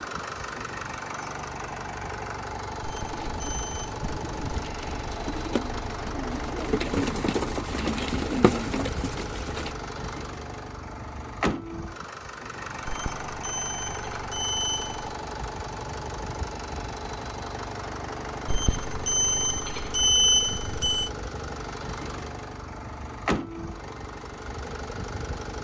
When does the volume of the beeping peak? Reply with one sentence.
The loudest moment of the beeping is at 20 seconds.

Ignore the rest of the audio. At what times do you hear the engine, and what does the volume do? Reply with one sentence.
You can hear the engine from 0.0 to 25.5 s, at a steady volume.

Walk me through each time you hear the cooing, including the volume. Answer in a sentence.
You can hear the cooing from 3.0 to 9.8 s, getting louder.